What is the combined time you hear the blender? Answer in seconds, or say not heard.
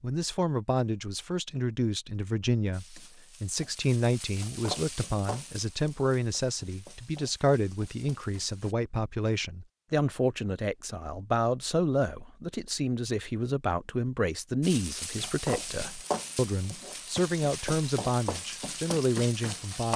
not heard.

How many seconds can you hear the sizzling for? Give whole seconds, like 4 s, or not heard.
11 s.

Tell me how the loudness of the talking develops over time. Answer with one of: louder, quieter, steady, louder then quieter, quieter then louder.
steady.